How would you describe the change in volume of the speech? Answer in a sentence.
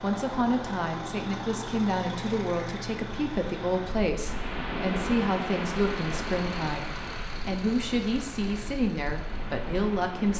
The volume of the speech stays about the same.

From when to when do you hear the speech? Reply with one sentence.
The speech can be heard from 0.0 to 10.3 s.